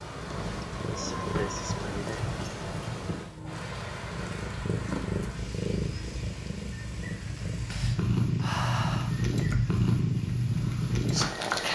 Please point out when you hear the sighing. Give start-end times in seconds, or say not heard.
0.7-2.2, 7.6-9.1.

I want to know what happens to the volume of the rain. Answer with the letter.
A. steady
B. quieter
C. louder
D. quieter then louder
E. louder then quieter
B.